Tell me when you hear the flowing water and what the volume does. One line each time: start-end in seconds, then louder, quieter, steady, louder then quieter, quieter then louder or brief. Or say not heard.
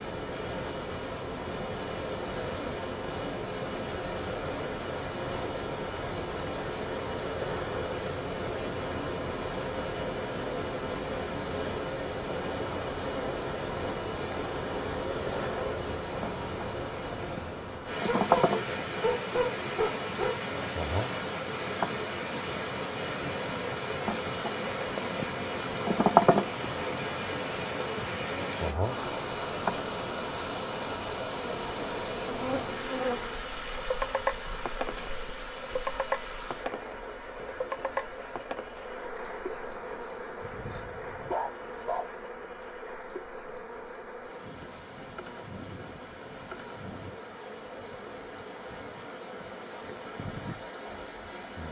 0.0-51.6 quieter.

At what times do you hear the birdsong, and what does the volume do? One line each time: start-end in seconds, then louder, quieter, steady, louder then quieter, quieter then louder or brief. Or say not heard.
not heard.